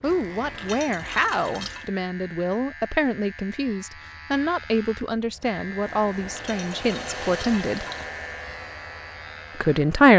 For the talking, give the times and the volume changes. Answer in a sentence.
The talking can be heard from 0.0 to 7.8 s, at a steady volume; and briefly from 9.6 to 10.1 s.